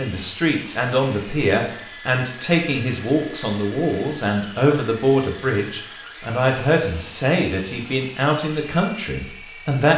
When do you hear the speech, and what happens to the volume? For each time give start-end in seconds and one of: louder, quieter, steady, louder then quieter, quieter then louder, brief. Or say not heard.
0.0-9.9 steady.